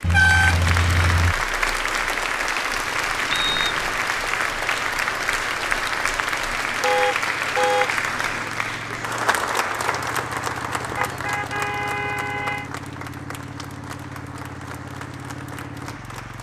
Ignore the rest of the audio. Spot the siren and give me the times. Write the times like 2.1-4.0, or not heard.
not heard.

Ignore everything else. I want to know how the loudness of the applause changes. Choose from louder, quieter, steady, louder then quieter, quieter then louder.
quieter.